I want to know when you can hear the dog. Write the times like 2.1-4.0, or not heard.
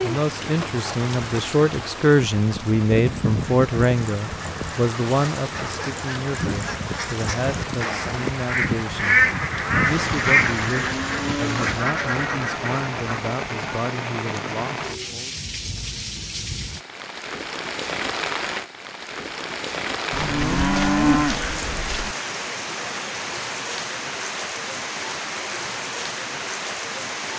not heard.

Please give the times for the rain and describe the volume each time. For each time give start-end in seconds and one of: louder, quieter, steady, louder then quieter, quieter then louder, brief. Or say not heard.
0.0-27.3 steady.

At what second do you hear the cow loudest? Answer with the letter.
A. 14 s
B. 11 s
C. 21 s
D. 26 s
C.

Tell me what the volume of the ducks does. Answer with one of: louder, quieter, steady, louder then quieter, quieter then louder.
louder then quieter.